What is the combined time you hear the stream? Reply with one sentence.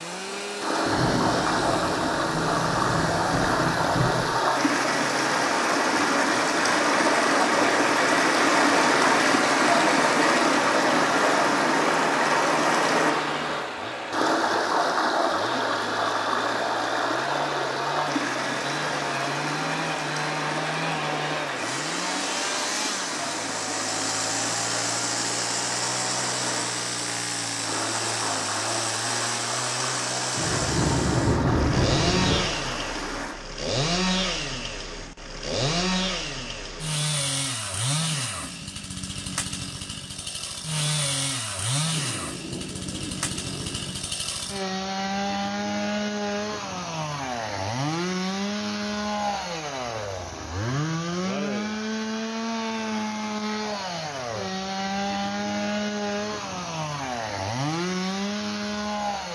You can hear the stream for 33 seconds altogether.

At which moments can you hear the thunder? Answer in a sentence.
You can hear the thunder from 0.8 to 4.2 s, from 30.3 to 32.4 s and from 41.9 to 44.0 s.